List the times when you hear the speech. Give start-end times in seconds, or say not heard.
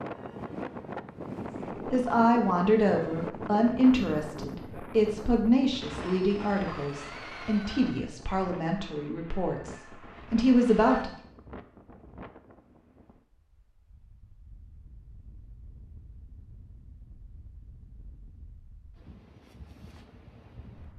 1.9-11.1.